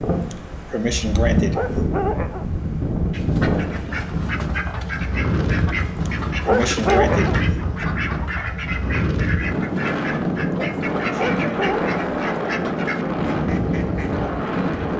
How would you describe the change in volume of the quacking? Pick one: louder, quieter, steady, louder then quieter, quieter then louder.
steady.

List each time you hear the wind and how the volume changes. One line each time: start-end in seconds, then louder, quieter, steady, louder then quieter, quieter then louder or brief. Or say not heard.
0.0-14.9 steady.